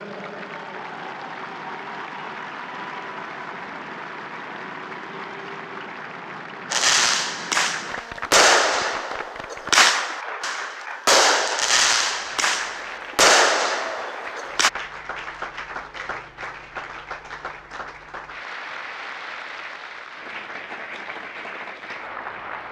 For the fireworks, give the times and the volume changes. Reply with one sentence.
You can hear the fireworks from 6.7 to 14.7 s, at a steady volume.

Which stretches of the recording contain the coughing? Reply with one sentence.
You can't hear the coughing here.